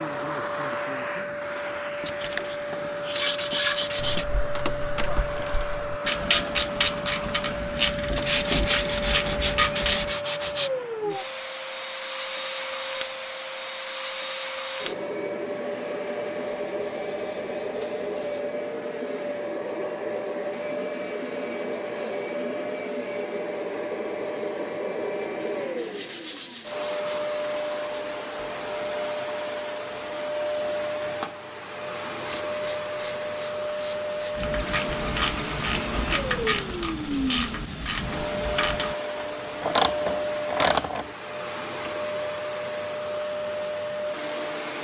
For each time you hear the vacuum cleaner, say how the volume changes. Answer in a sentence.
The vacuum cleaner can be heard from 0.0 to 44.7 s, at a steady volume.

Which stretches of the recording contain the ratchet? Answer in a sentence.
You can hear the ratchet from 3.1 to 10.2 s and from 34.4 to 41.1 s.